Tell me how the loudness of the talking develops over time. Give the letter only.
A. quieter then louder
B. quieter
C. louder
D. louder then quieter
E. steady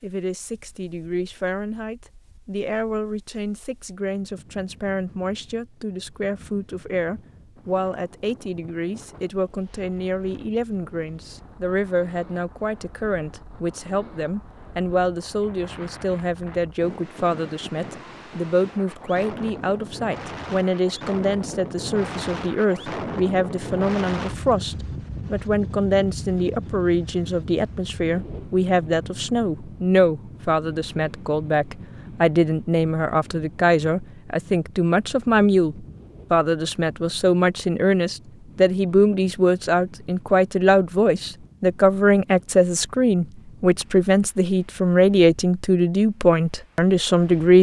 C.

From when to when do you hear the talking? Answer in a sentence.
You can hear the talking from 0.0 to 47.5 s.